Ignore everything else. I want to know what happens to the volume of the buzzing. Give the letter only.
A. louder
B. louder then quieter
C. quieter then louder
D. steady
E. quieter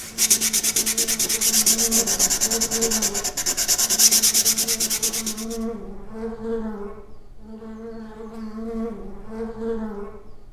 D.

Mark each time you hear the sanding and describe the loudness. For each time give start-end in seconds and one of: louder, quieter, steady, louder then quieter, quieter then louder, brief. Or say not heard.
0.0-5.5 steady.